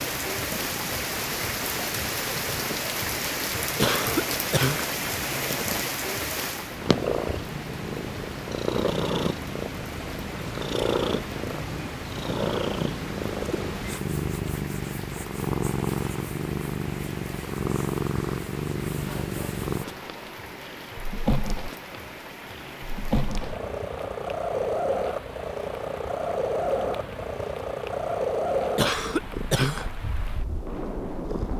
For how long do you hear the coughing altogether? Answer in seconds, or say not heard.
2 s.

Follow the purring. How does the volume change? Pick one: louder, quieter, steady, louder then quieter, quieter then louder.
louder.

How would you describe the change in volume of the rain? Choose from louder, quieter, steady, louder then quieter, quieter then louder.
quieter.